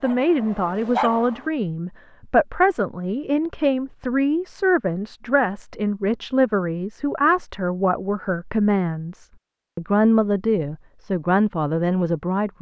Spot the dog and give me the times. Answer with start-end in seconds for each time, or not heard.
0.0-1.5.